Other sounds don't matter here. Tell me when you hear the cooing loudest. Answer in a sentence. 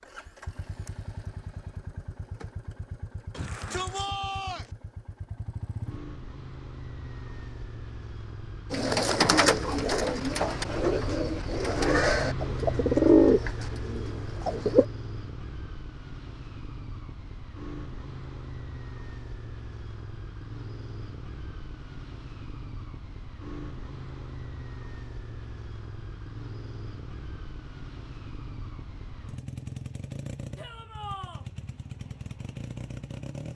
The volume of the cooing peaks at 13 seconds.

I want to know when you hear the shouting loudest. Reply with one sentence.
The volume of the shouting peaks at 4 seconds.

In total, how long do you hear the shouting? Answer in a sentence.
You can hear the shouting for 2 seconds altogether.